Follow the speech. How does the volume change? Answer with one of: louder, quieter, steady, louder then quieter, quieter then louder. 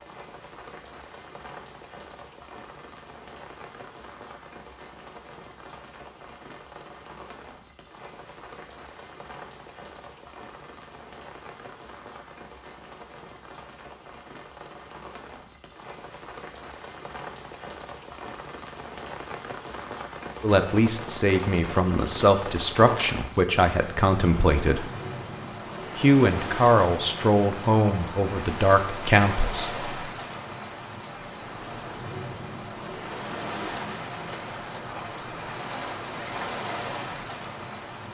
steady.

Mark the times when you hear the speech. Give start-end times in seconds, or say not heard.
20.4-24.9, 25.9-29.9.